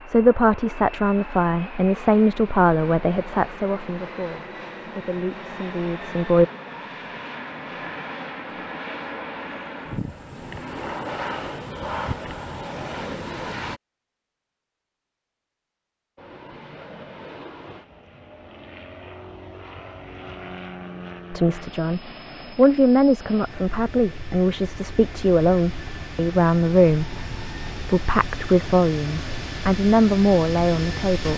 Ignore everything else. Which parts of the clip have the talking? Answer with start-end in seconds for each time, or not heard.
0.1-6.5, 21.3-31.3.